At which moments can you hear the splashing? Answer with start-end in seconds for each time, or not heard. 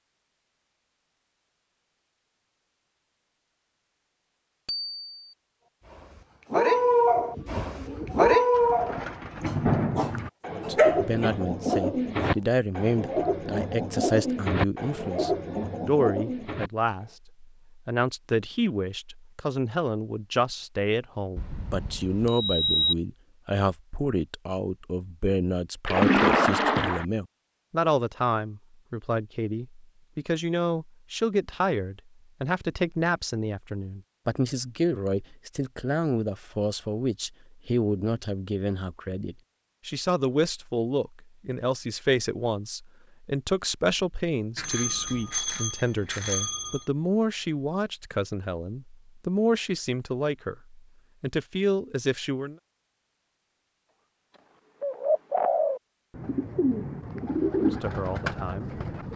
25.9-27.1.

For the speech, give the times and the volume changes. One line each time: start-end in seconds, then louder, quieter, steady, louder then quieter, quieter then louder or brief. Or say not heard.
10.5-52.5 steady
57.5-58.8 brief.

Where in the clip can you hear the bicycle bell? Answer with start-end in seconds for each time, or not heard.
4.7-5.3, 21.4-22.9, 44.5-46.8.